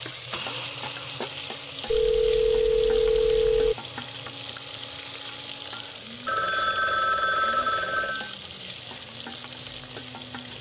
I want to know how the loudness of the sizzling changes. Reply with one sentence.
The loudness of the sizzling stays about the same.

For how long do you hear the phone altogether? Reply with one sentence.
You can hear the phone for 4 seconds altogether.